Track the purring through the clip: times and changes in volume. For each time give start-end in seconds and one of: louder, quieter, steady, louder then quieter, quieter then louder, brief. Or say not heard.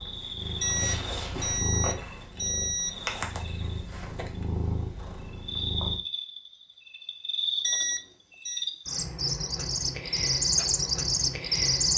0.0-6.0 steady.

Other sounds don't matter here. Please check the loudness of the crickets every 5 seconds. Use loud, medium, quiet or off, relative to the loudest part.
quiet, medium, loud.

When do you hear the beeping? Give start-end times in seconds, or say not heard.
0.6-3.0, 7.6-8.7.